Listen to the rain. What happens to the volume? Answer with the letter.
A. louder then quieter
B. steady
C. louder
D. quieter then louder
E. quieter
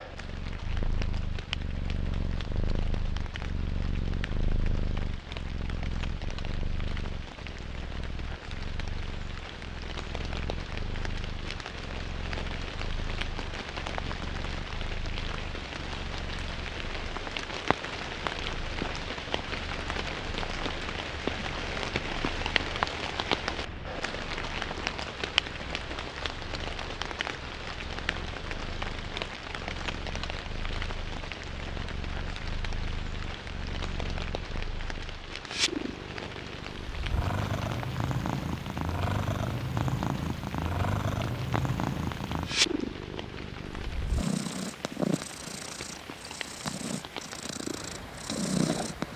A.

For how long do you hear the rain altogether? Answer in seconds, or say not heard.
49 s.